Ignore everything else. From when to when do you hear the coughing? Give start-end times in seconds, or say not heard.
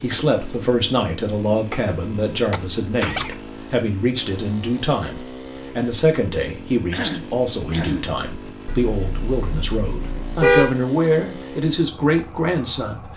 2.5-3.4, 6.9-8.1.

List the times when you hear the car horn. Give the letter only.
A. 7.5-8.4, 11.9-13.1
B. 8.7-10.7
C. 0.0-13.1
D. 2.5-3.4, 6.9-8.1
B.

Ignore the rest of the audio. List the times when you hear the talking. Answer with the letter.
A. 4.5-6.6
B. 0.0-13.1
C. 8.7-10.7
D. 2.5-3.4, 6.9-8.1
B.